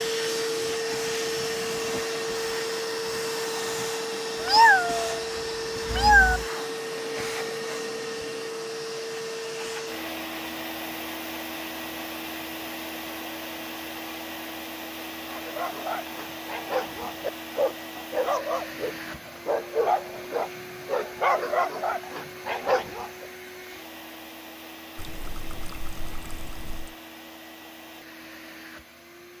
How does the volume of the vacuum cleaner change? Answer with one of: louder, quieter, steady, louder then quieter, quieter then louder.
quieter.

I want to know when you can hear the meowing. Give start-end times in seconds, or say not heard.
4.4-5.2, 5.9-6.4.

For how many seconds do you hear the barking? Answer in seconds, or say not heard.
8 s.